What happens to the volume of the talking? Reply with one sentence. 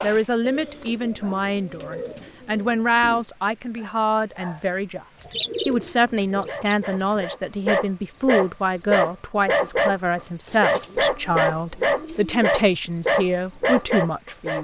The volume of the talking stays about the same.